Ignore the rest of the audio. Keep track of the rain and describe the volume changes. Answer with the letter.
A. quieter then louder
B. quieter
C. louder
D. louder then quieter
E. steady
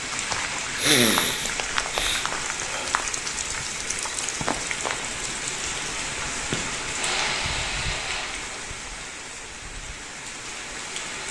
B.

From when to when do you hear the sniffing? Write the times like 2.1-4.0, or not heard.
0.3-2.9, 6.5-8.5.